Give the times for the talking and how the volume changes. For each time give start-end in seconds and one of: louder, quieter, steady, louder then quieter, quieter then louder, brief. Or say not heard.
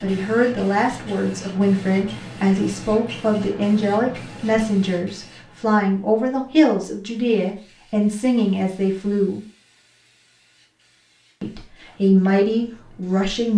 0.0-9.4 steady
11.4-13.5 brief.